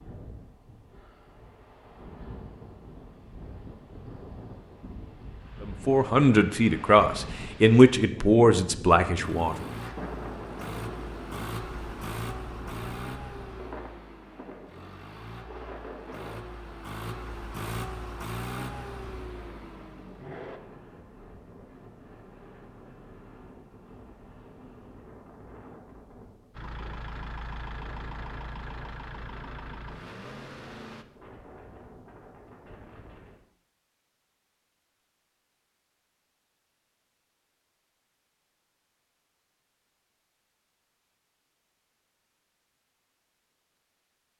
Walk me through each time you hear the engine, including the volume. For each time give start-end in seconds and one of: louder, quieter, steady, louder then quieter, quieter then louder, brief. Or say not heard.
9.2-20.6 quieter then louder
26.5-31.1 steady.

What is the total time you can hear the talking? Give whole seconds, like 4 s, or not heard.
4 s.